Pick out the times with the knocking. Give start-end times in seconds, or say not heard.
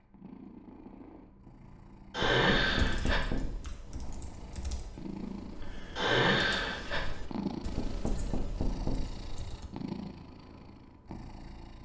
2.2-3.7, 7.8-9.2.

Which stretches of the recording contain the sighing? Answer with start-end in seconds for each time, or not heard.
2.1-3.2, 6.0-7.0.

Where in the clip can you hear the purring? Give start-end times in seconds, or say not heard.
0.0-11.8.